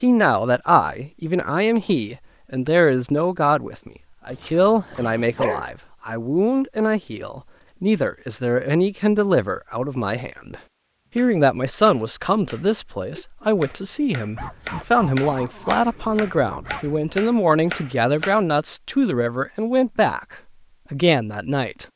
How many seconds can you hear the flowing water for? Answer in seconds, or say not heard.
not heard.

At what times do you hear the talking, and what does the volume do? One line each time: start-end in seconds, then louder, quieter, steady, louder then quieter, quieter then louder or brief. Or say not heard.
0.0-21.9 steady.